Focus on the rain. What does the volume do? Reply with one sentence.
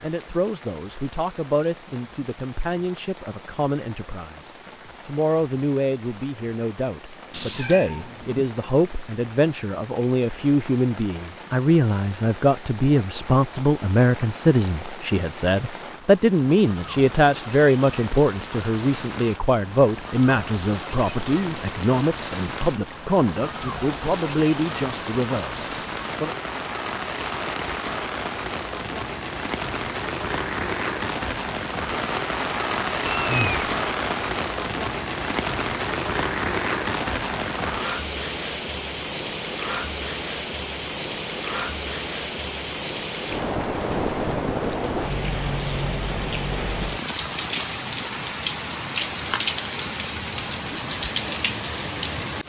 The volume of the rain goes up.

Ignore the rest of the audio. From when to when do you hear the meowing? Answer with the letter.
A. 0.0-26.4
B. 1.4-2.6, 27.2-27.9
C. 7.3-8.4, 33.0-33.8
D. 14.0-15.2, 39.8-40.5
C.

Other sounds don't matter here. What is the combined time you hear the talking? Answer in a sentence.
You can hear the talking for 26 seconds altogether.